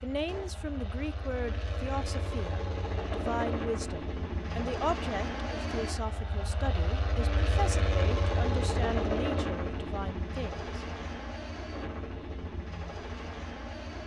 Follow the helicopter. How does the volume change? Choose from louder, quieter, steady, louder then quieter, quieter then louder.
louder then quieter.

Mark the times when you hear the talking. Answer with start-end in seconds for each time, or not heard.
0.0-10.8.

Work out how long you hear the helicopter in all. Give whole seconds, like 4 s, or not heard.
14 s.